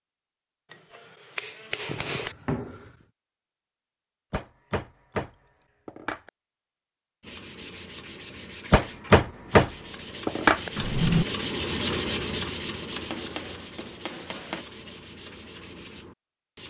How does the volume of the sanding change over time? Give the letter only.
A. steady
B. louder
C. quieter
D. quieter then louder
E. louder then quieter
E.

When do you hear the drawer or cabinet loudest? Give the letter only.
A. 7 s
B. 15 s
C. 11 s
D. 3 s
C.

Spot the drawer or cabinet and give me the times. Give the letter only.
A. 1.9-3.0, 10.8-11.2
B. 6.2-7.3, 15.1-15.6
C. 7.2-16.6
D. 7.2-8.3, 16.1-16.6
A.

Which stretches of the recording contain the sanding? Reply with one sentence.
The sanding can be heard from 7.2 to 16.6 s.